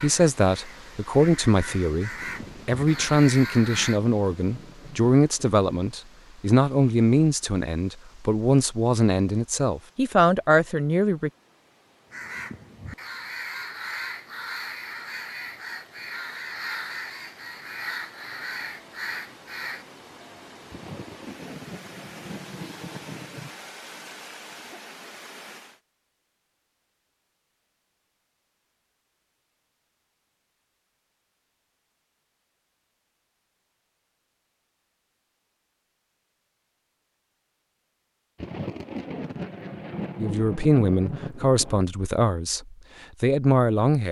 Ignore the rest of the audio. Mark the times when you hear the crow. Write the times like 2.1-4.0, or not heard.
0.0-4.0, 12.1-19.9.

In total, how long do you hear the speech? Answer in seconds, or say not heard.
15 s.